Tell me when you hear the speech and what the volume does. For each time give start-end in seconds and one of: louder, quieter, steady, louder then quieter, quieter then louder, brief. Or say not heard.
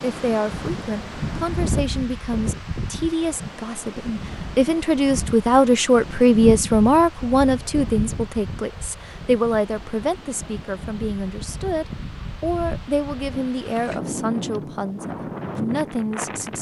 0.0-16.5 louder then quieter.